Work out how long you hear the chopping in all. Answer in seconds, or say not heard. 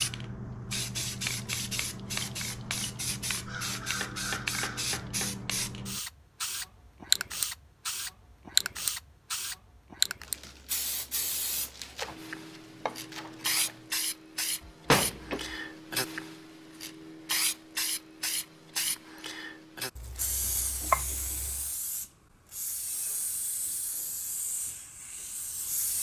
5 s.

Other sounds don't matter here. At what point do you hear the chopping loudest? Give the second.
21 s.